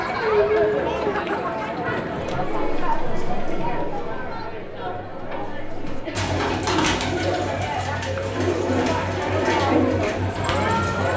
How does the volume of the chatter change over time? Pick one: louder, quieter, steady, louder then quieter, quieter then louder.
quieter then louder.